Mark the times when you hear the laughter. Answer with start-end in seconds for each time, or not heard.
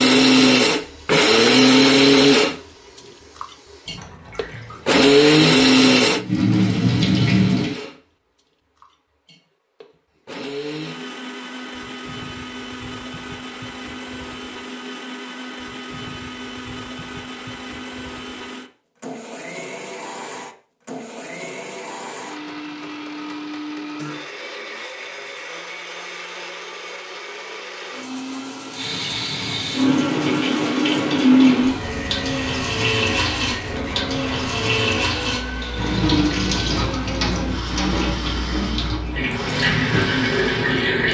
not heard.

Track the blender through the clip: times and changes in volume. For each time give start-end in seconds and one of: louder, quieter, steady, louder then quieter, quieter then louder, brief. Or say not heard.
0.0-40.8 quieter.